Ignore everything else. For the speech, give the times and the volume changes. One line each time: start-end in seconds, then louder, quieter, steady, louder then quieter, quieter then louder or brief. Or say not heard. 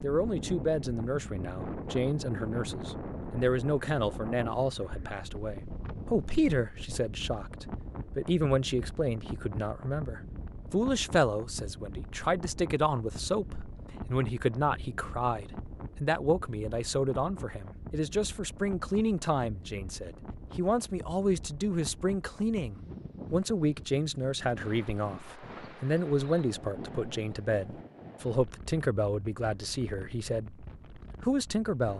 0.0-31.9 steady.